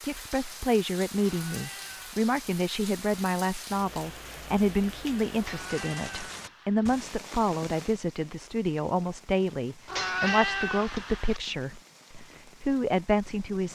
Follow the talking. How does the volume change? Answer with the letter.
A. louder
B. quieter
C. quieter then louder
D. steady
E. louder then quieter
D.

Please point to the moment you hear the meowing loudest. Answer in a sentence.
The volume of the meowing peaks at 10 seconds.